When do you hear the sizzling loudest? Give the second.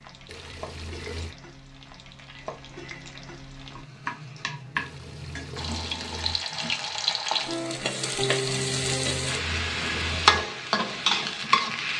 11 s.